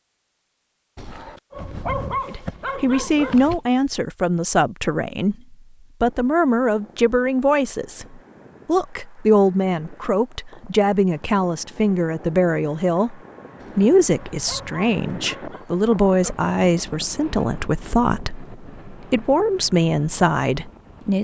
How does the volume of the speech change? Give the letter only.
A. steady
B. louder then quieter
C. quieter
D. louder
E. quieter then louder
A.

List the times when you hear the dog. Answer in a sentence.
You can hear the dog from 0.9 to 3.6 s and from 13.6 to 15.7 s.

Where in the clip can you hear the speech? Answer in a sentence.
The speech can be heard from 2.2 to 21.2 s.